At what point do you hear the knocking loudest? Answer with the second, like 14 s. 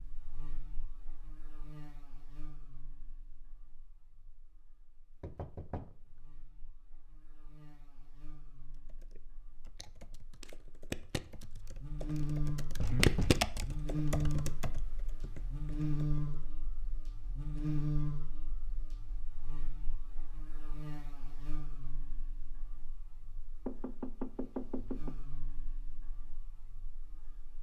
13 s.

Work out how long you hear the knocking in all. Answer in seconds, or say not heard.
3 s.